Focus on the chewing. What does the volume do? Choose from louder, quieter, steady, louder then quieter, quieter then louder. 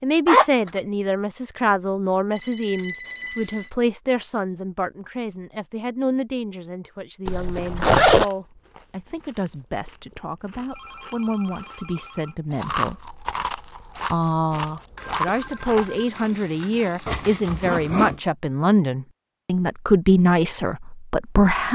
louder.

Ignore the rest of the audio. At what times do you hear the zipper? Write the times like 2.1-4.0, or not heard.
0.2-0.8, 7.2-8.2, 17.1-18.2.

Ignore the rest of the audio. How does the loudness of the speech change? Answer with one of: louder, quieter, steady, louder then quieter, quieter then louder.
quieter then louder.